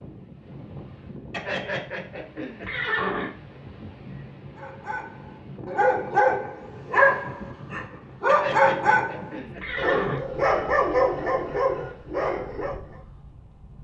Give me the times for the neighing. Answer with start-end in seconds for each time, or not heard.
1.3-3.3, 8.2-10.2.